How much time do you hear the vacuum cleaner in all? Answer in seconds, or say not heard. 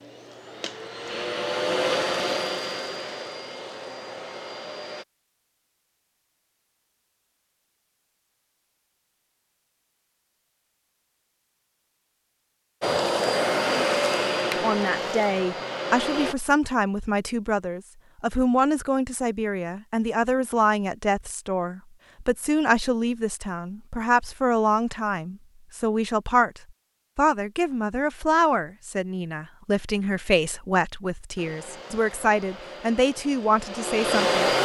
12 s.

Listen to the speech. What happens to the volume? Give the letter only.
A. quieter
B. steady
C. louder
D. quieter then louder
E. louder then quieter
B.